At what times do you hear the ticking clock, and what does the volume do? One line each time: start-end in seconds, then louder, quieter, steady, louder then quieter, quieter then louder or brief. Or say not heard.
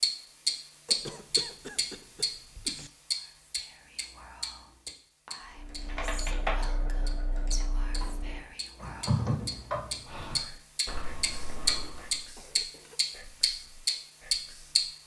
0.0-14.8 quieter then louder.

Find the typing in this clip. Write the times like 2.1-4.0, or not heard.
5.5-12.2.